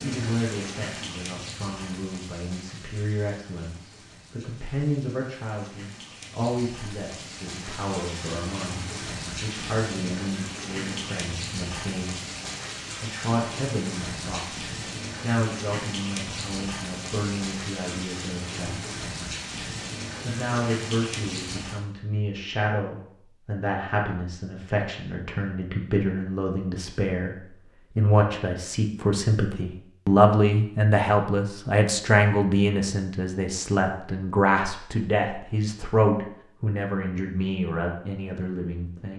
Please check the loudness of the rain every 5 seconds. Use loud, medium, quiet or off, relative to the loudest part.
medium, loud, loud, loud, loud, off, off, off.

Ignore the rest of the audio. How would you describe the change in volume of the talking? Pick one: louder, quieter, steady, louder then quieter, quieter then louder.
louder.